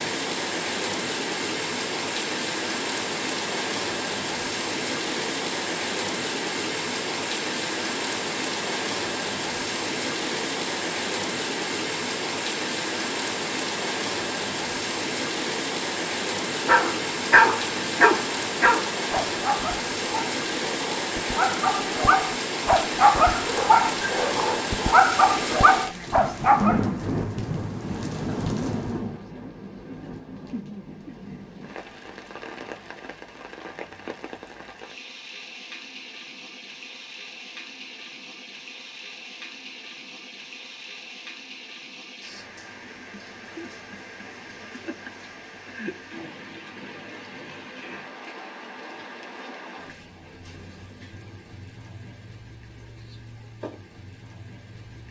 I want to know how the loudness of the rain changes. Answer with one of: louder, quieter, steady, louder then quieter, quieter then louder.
quieter.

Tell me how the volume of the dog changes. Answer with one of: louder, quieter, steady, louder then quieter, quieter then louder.
quieter then louder.